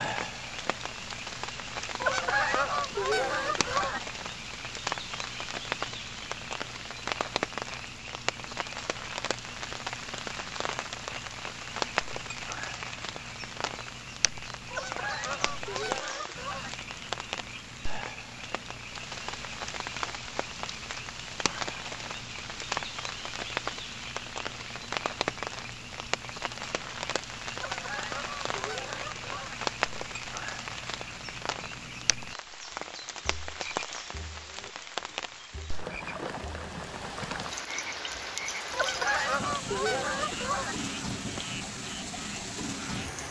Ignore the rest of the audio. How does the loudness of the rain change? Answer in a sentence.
The volume of the rain stays about the same.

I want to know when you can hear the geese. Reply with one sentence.
You can hear the geese from 2.0 to 4.0 s, from 14.7 to 16.7 s, from 27.6 to 29.6 s and from 38.7 to 40.8 s.